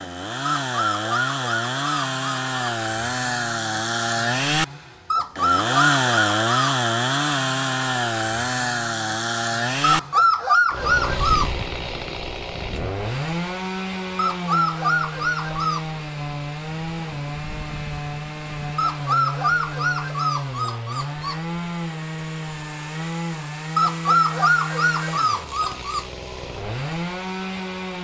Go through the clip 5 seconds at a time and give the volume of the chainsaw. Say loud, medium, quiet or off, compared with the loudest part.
loud, loud, medium, medium, medium, medium.